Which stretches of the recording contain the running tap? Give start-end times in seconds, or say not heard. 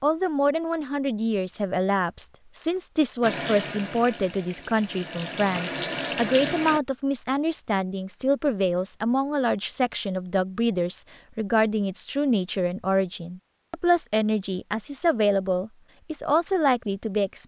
3.2-6.8.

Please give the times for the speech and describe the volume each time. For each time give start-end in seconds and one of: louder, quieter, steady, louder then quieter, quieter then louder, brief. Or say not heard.
0.0-17.4 steady.